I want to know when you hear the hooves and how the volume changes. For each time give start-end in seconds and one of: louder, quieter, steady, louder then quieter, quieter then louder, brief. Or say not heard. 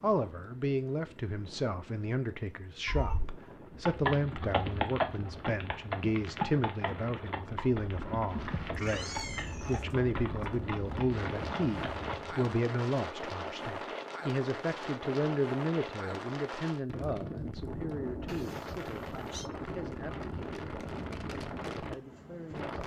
3.8-12.6 quieter.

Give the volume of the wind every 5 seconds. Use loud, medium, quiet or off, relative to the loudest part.
quiet, medium, loud, loud, loud.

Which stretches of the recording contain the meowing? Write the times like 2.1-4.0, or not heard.
2.9-3.4, 8.7-9.8, 18.2-19.5.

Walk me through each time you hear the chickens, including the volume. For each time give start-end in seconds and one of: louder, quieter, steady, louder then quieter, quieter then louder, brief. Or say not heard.
not heard.